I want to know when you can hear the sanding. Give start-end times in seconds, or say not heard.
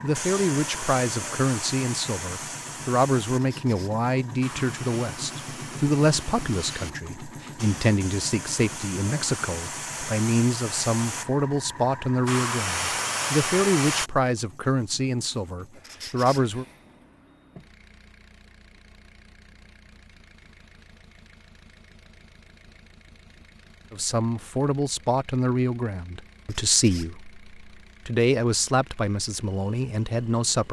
not heard.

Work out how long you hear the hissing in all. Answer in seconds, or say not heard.
14 s.